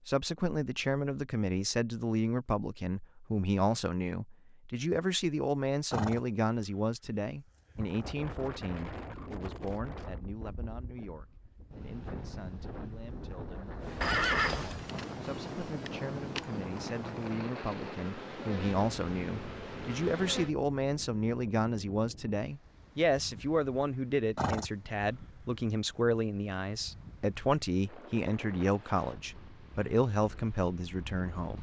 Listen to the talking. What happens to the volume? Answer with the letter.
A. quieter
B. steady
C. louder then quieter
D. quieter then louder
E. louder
D.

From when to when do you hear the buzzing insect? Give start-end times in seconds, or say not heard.
13.8-20.5.